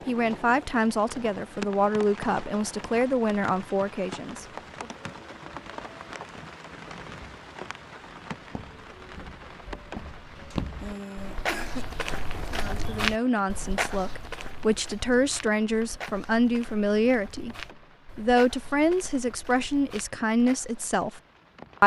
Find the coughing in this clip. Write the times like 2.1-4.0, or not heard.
10.8-11.8.